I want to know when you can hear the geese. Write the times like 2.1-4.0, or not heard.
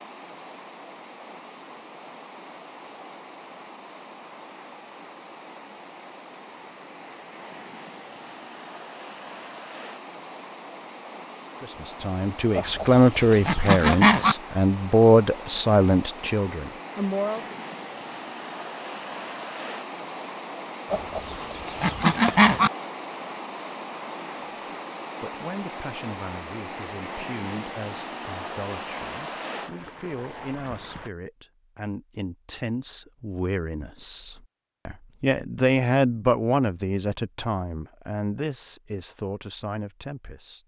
12.6-14.3, 20.9-22.7.